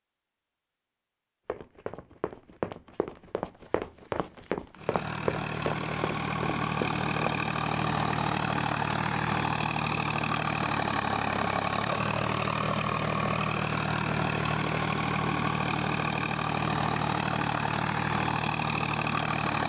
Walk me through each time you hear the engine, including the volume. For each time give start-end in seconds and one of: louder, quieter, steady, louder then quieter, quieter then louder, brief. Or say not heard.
4.8-19.6 steady.